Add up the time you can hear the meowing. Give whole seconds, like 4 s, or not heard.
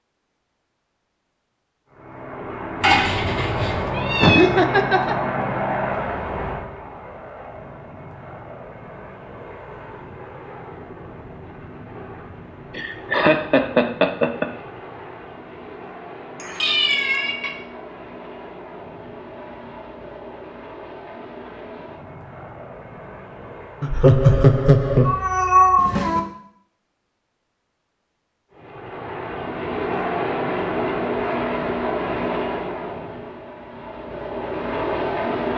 4 s.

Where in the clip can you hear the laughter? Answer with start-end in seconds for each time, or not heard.
4.2-5.2, 12.8-14.4, 23.8-25.1.